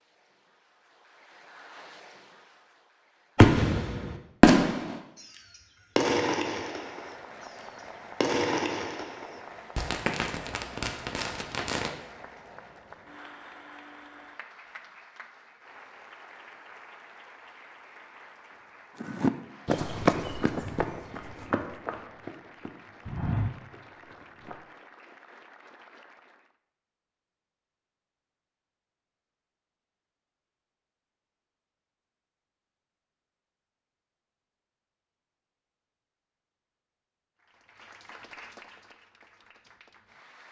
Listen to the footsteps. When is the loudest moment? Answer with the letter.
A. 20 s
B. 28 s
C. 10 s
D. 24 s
A.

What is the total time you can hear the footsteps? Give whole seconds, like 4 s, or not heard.
6 s.